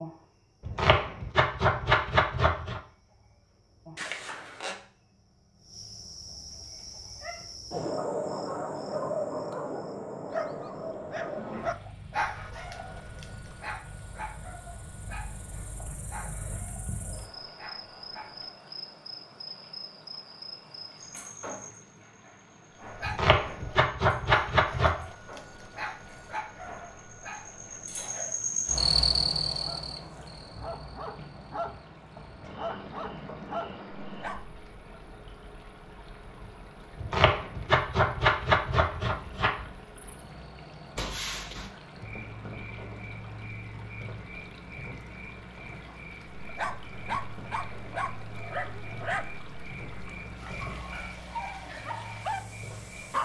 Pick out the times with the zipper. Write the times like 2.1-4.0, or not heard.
4.0-4.8, 41.0-41.7.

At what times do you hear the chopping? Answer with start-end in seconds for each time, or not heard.
0.7-2.8, 23.1-25.1, 37.0-39.6.